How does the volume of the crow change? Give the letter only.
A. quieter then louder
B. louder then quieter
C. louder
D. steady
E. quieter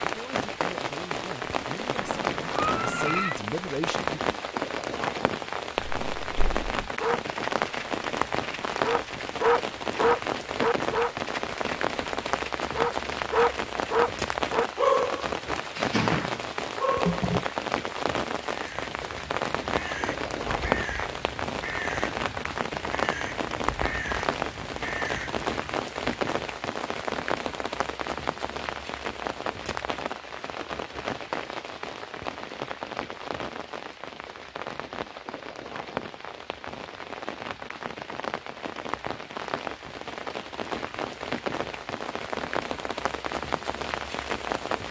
D.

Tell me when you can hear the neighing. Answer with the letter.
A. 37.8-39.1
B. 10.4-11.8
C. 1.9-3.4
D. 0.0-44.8
C.